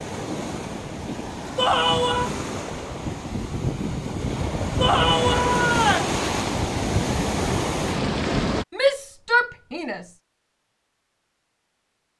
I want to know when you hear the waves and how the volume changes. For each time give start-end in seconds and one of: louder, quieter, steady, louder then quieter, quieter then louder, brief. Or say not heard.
0.0-8.7 louder.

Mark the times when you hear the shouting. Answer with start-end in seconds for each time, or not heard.
1.6-2.3, 4.8-6.1, 8.7-10.1.